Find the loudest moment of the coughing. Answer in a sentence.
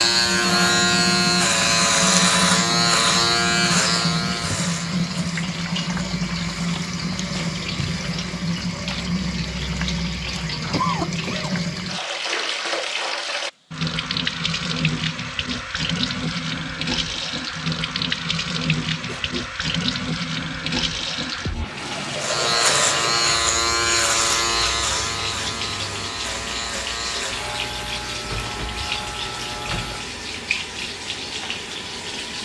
The volume of the coughing peaks at 11 seconds.